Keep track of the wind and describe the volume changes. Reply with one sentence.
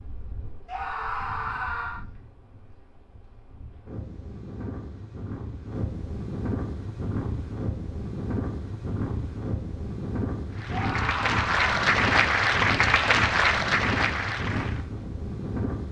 The volume of the wind goes up.